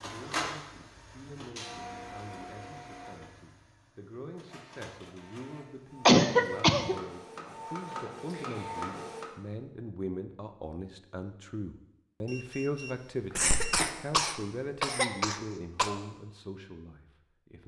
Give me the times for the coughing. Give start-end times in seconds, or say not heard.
0.2-0.7, 6.0-7.0, 13.3-15.9.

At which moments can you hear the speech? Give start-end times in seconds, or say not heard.
0.0-17.6.